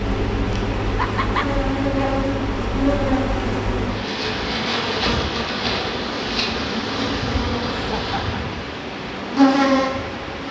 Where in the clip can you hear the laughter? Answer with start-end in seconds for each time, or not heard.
0.9-1.5, 7.7-8.4.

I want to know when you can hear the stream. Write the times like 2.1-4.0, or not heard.
0.0-10.4.